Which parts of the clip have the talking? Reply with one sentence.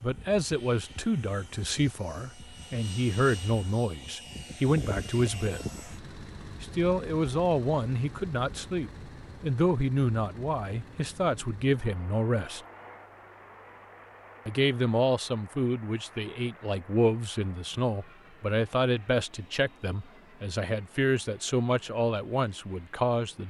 You can hear the talking from 0.0 to 5.8 s, from 6.6 to 12.6 s and from 14.4 to 23.4 s.